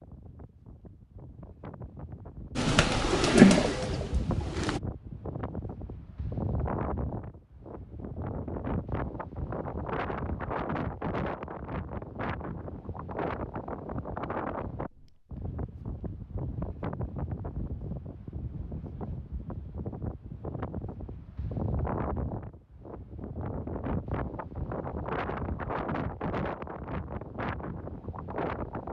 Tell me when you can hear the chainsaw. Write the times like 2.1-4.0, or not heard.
not heard.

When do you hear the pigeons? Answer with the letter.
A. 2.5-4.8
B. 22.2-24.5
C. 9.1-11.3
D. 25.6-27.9
A.